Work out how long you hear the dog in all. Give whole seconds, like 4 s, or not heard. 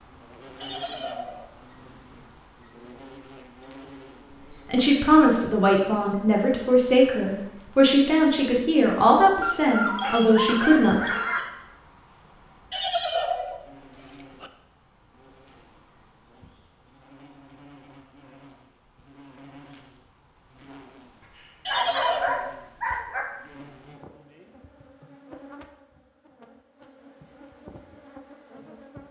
4 s.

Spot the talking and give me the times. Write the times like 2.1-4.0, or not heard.
4.7-11.2.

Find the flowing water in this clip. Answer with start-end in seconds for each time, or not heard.
not heard.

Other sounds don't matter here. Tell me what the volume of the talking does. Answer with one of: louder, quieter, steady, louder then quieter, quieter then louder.
steady.